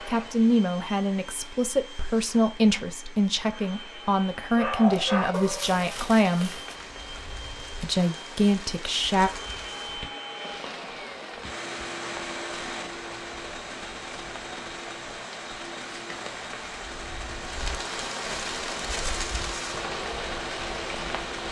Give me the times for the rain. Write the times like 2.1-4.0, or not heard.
4.8-21.4.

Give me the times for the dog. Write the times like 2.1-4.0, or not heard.
4.5-6.8.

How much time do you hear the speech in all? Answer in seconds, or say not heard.
8 s.